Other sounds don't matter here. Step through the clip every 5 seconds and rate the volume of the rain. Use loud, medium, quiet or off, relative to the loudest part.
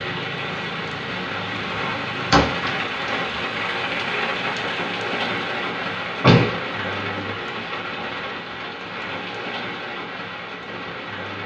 loud, loud, medium.